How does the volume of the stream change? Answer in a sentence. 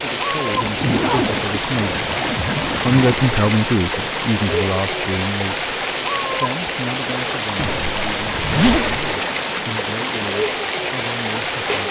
The volume of the stream stays about the same.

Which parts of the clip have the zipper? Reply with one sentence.
You can hear the zipper from 0.5 to 3.3 s and from 7.5 to 9.1 s.